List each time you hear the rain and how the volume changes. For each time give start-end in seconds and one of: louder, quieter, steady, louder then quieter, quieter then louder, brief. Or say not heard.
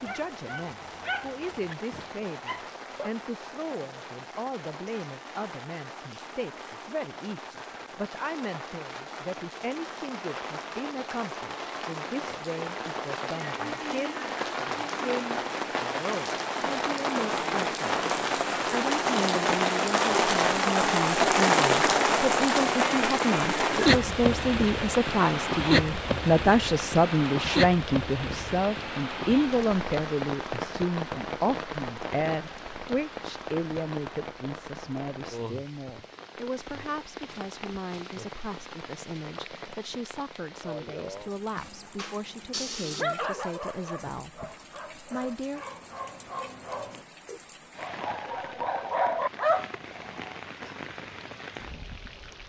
0.0-52.4 louder then quieter.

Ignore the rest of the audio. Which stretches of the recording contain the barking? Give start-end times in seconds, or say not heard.
0.0-3.1, 41.5-50.8.